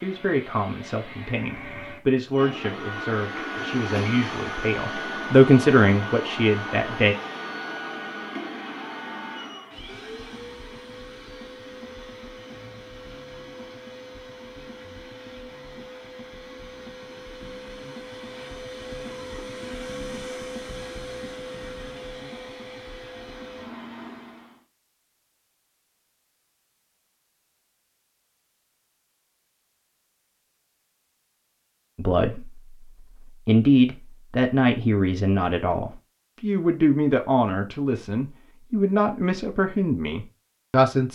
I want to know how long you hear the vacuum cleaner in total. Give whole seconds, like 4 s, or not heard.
25 s.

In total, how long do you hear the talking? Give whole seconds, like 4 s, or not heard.
16 s.